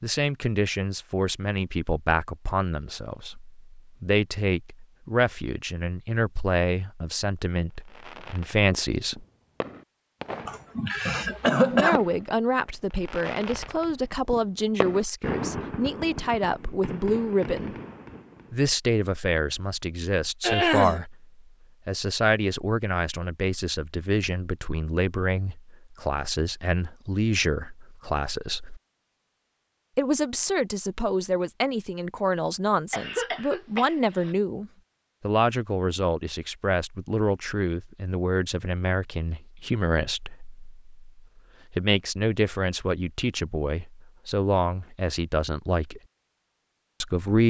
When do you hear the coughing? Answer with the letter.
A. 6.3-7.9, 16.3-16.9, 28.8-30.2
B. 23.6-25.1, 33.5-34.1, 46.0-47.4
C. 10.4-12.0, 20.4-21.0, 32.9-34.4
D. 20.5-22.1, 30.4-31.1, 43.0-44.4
C.